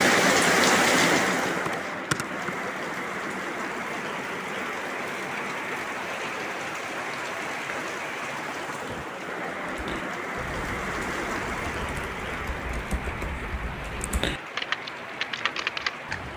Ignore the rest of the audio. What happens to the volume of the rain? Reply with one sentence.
The loudness of the rain goes down.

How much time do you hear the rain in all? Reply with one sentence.
The rain can be heard for 16 seconds in total.